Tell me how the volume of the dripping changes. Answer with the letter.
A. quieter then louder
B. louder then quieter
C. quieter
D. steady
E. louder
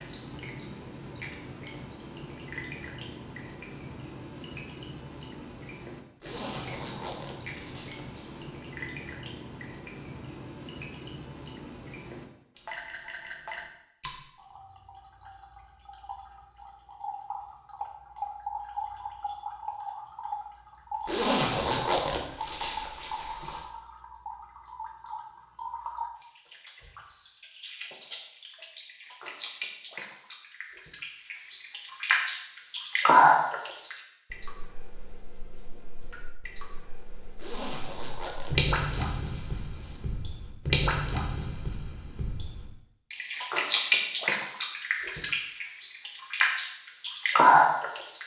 E.